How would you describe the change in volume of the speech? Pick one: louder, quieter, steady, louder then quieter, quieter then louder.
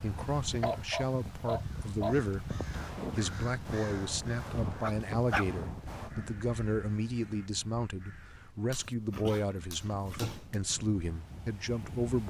steady.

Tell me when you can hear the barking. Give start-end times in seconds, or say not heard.
0.1-2.1, 4.8-6.3, 8.7-10.6.